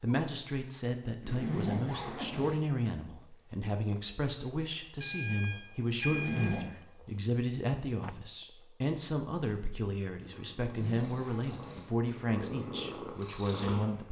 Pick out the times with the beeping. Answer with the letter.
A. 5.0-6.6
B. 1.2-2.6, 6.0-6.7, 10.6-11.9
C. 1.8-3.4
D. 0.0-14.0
A.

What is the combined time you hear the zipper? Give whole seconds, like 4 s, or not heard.
3 s.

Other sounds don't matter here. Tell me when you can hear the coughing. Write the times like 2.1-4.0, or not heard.
not heard.